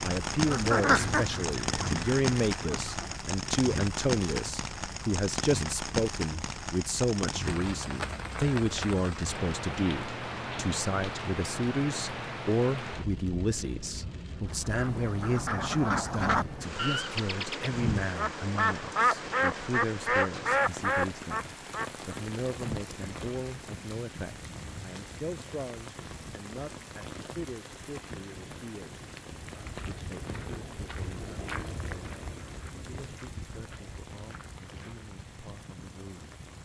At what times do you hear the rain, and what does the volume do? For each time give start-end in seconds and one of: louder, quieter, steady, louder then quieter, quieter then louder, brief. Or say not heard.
0.0-36.5 quieter.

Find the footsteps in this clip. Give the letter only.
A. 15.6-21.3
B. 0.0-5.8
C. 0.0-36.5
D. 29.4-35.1
D.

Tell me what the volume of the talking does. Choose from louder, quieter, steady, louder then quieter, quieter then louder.
quieter.